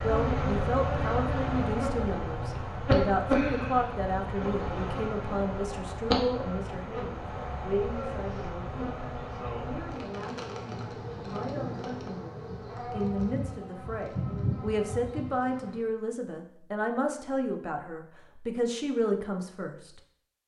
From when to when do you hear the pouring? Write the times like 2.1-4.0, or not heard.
not heard.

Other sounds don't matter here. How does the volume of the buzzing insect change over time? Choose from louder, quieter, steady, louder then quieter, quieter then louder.
quieter.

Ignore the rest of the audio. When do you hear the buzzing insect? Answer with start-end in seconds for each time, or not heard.
0.0-15.8.